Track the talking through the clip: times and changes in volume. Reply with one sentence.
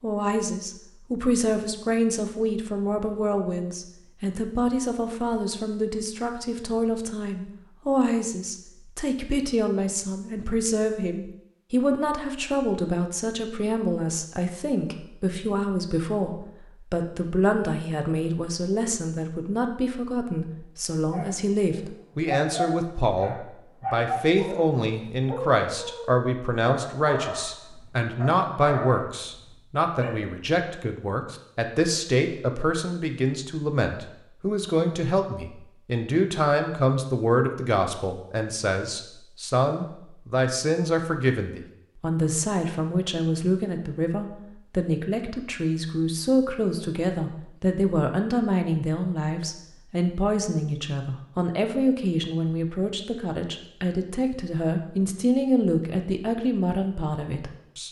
The talking can be heard from 0.0 to 57.8 s, at a steady volume.